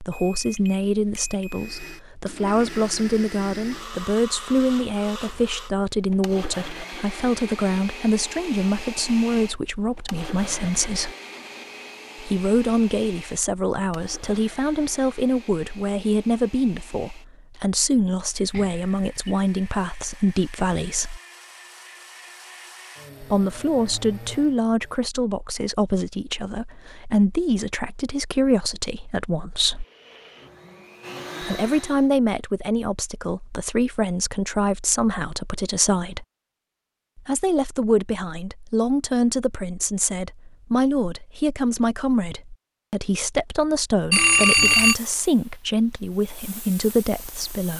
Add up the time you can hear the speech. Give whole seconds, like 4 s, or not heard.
42 s.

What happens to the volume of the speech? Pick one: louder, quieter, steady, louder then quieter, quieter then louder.
steady.